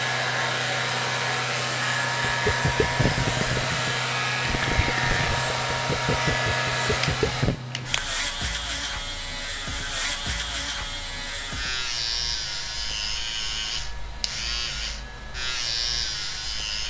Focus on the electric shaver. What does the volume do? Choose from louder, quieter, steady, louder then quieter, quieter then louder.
steady.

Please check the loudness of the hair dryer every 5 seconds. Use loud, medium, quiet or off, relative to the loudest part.
loud, loud, quiet, quiet.